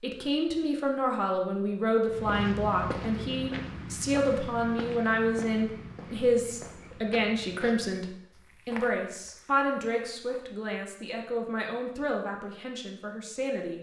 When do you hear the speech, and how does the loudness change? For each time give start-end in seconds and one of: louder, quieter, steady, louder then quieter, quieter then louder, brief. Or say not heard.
0.0-13.7 quieter.